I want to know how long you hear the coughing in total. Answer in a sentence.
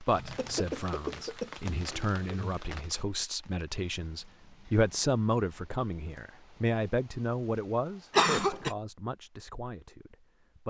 The coughing can be heard for 3 seconds in total.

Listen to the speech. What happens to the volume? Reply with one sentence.
The volume of the speech goes up, then down.